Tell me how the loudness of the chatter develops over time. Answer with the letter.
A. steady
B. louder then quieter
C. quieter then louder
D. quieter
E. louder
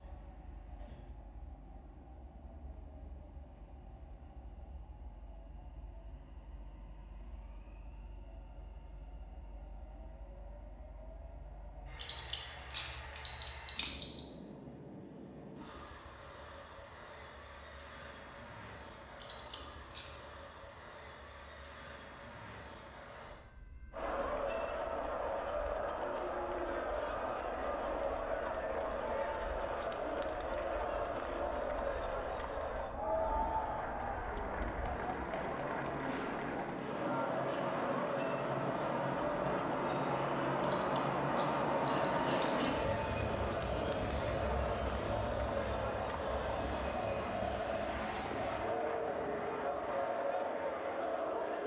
A.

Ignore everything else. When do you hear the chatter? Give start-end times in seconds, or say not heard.
23.9-51.6.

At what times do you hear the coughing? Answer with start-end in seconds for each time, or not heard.
not heard.